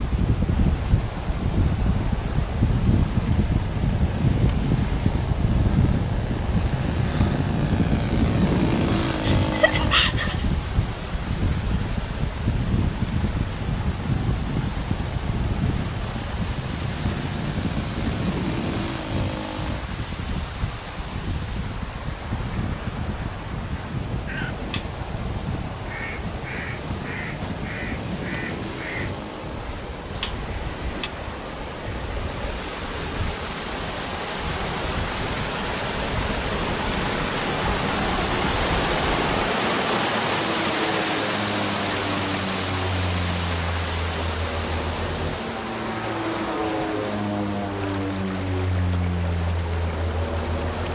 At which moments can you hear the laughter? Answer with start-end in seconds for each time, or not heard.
9.2-10.4.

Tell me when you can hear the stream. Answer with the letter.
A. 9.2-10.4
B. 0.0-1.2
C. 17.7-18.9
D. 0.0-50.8
D.